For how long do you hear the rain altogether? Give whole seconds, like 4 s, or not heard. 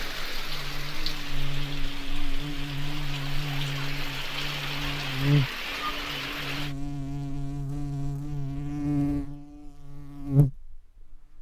7 s.